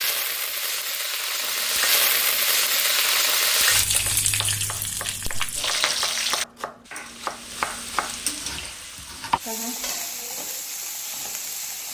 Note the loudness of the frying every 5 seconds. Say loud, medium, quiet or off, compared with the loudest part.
loud, medium, medium.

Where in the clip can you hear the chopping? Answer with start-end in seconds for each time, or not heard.
1.4-9.4.